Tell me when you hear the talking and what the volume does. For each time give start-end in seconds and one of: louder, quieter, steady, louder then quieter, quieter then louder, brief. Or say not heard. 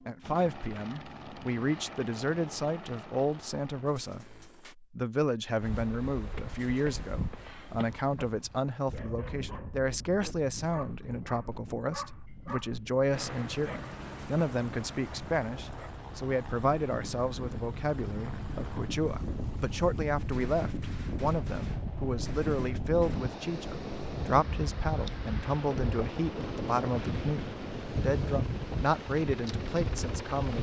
0.1-30.5 steady.